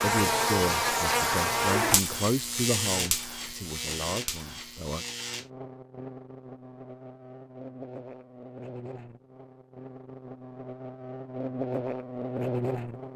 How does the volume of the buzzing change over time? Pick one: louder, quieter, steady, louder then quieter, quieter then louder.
quieter then louder.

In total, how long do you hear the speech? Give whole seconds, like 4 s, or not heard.
5 s.